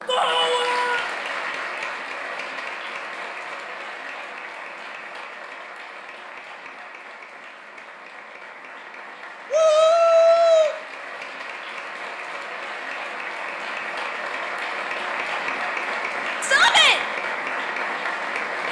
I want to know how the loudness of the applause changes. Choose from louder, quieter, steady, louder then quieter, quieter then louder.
quieter then louder.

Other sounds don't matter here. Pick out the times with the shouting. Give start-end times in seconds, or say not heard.
0.1-1.1, 9.5-10.8, 16.4-17.0.